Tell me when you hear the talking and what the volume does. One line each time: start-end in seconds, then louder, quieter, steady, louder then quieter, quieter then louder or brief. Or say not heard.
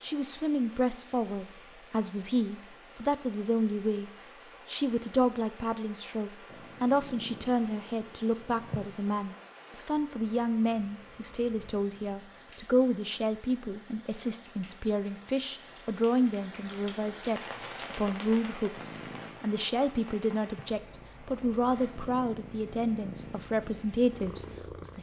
0.0-24.9 steady.